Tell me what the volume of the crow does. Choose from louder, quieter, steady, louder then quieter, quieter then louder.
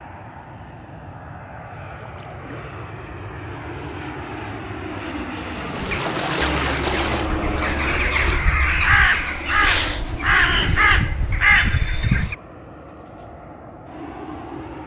louder.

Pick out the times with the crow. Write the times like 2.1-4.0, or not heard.
5.8-12.3.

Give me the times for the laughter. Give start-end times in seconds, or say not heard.
not heard.